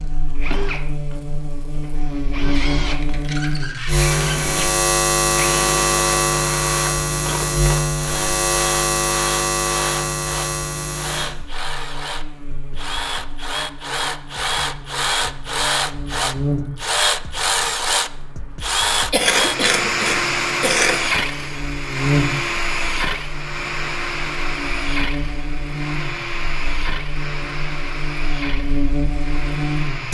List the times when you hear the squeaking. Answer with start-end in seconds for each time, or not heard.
2.5-4.5.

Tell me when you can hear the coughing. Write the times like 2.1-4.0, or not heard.
19.1-21.0.